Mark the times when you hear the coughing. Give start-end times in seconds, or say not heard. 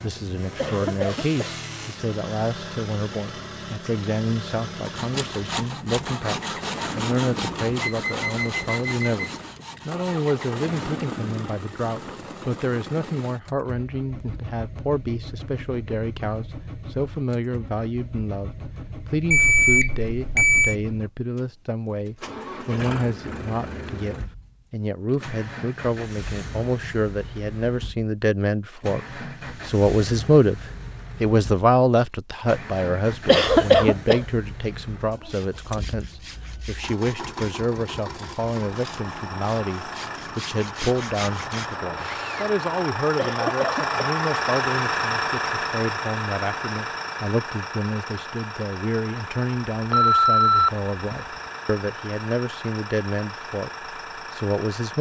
0.6-1.5, 33.2-34.2, 43.1-44.1.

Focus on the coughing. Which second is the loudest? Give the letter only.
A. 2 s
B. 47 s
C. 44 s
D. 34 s
D.